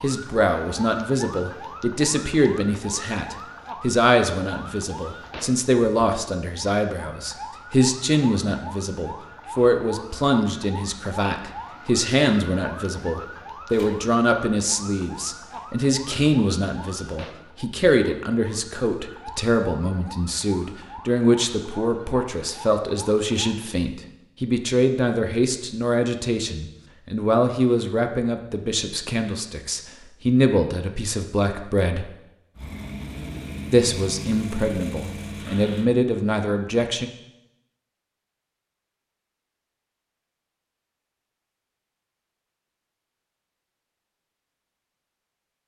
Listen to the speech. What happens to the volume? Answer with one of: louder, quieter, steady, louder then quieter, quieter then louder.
steady.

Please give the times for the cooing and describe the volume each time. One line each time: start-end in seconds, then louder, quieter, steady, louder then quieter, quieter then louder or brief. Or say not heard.
not heard.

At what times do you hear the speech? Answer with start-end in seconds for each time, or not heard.
0.0-32.1, 33.7-37.1.